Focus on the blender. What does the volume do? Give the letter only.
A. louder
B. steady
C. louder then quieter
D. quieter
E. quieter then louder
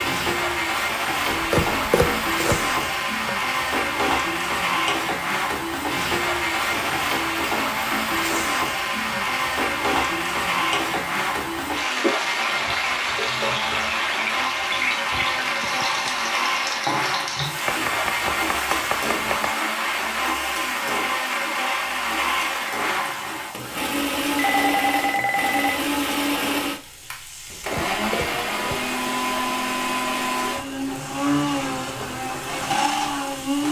B.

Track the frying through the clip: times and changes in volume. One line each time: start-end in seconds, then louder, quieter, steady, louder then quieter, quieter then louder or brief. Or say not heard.
0.0-33.6 quieter.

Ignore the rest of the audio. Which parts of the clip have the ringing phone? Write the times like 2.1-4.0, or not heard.
6.7-7.2, 14.7-16.2, 24.4-25.9.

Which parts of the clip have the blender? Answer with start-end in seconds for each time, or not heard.
0.0-33.6.